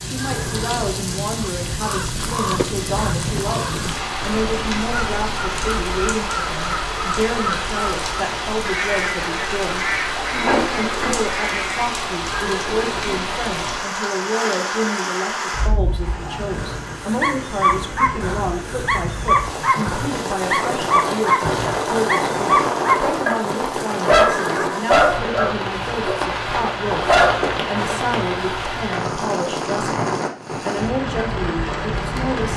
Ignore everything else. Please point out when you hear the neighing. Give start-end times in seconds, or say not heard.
0.1-0.9, 12.3-13.2, 24.1-25.1.